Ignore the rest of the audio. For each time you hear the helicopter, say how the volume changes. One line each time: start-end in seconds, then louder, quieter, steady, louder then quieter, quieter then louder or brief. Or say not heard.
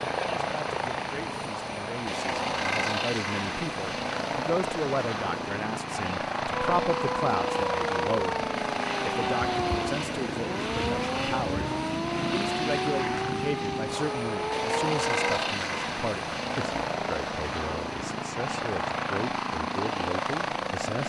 0.0-21.0 steady.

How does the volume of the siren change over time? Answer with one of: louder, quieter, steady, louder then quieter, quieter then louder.
steady.